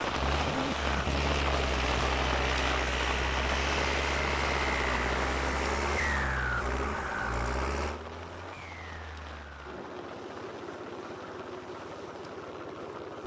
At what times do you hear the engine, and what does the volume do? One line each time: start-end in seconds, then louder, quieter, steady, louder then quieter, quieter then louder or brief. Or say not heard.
0.0-13.2 quieter.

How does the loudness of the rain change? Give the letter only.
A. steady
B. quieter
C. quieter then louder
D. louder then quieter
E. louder
B.